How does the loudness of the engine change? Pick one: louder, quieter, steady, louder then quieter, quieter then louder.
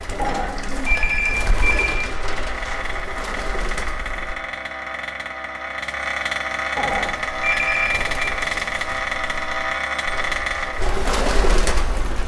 louder.